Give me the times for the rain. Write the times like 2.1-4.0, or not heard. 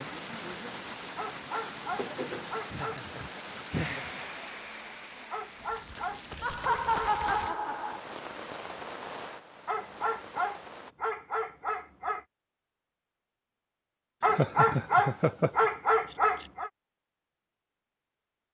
0.0-10.9.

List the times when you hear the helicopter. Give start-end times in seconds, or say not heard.
not heard.